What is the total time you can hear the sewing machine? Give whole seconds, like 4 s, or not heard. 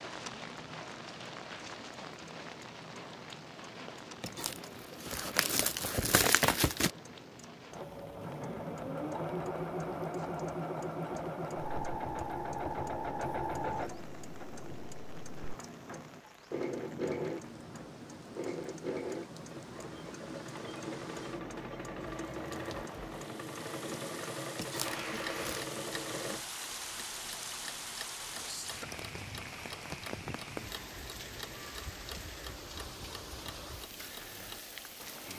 19 s.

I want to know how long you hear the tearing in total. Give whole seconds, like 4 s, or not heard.
4 s.